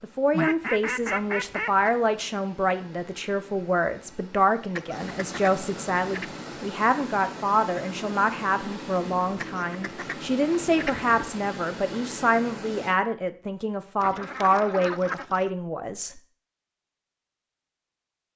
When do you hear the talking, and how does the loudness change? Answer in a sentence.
You can hear the talking from 0.0 to 16.2 s, at a steady volume.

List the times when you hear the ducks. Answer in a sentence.
You can hear the ducks from 0.3 to 1.9 s, from 4.8 to 6.3 s, from 9.4 to 11.3 s and from 14.0 to 15.5 s.